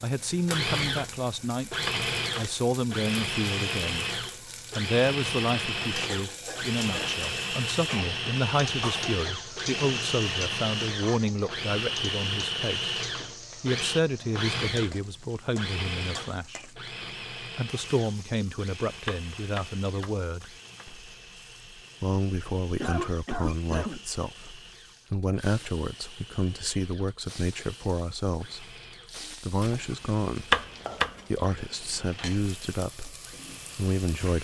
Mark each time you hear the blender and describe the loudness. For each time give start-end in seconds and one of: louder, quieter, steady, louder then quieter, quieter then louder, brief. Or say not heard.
0.1-34.2 quieter.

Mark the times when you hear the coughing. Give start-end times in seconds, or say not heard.
7.8-9.2, 22.8-24.0.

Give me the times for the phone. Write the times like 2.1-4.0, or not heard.
not heard.